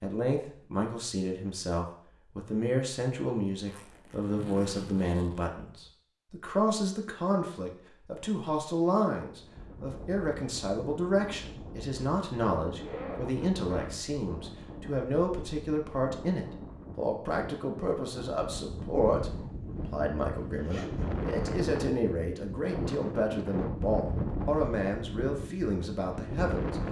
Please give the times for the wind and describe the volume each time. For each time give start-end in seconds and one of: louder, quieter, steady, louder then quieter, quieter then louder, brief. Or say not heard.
9.2-26.8 louder.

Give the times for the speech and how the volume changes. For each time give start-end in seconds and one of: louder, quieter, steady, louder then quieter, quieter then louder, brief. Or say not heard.
0.0-26.8 steady.